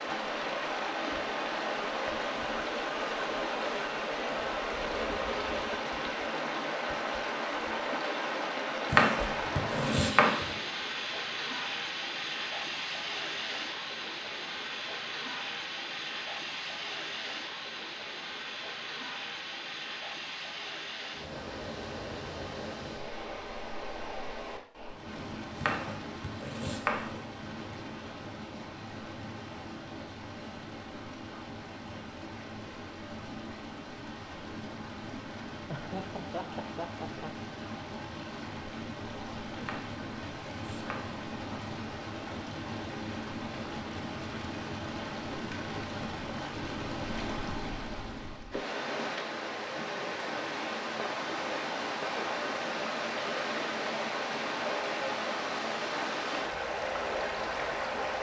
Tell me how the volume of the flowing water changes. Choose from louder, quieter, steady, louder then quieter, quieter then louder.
quieter then louder.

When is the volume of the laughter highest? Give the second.
36 s.